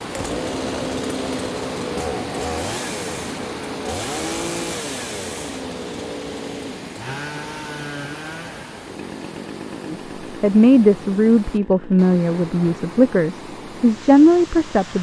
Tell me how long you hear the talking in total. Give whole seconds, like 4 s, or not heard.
5 s.